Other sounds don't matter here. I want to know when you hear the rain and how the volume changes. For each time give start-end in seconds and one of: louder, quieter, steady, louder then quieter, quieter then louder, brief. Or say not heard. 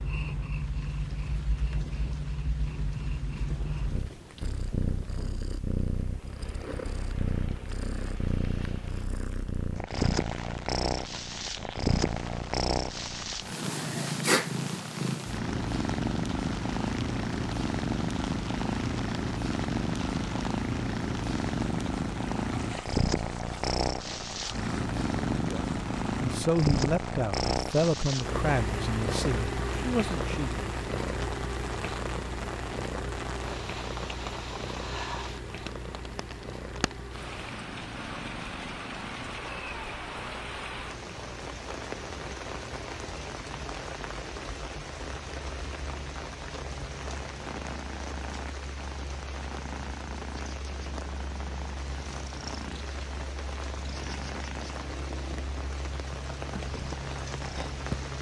0.0-58.1 louder.